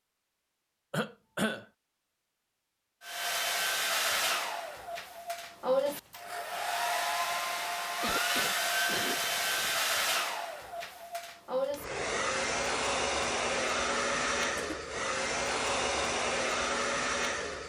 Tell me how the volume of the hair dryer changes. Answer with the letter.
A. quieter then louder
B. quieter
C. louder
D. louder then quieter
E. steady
E.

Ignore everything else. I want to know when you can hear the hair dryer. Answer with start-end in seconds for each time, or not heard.
3.0-17.6.